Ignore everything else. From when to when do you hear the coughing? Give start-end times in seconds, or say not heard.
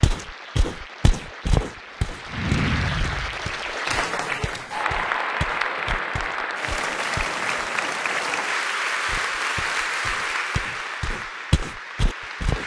not heard.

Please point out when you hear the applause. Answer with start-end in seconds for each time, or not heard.
0.0-12.6.